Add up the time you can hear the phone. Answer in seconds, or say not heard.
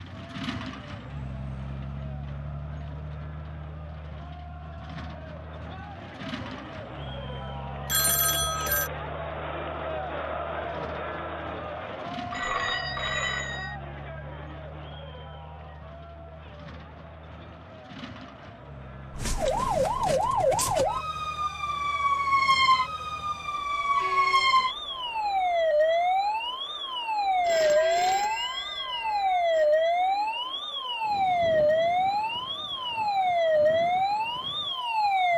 5 s.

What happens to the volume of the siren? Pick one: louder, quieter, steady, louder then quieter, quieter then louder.
steady.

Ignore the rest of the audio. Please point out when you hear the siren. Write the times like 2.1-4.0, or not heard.
19.1-35.3.